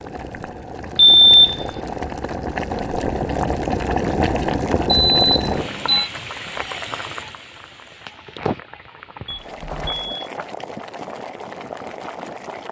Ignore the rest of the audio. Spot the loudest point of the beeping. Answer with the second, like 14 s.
1 s.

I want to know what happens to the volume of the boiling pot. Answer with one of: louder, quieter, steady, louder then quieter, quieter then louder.
louder then quieter.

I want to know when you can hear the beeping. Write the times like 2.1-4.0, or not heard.
0.9-1.6, 4.8-6.1, 9.2-10.2.